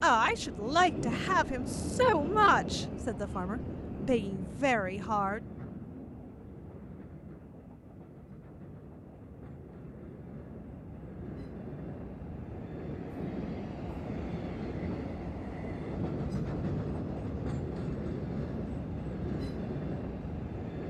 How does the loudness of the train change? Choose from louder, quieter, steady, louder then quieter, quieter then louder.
quieter then louder.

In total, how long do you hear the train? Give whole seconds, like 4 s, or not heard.
21 s.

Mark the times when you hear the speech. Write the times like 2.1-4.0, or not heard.
0.0-5.4.